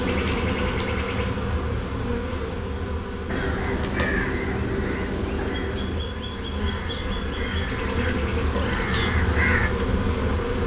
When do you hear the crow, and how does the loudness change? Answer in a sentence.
The crow can be heard from 3.2 to 9.7 s, getting quieter then louder.